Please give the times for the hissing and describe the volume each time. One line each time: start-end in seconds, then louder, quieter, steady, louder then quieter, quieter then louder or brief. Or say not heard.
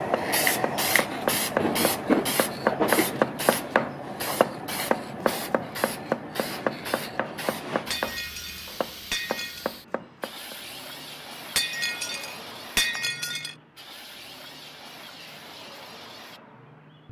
0.0-17.0 quieter.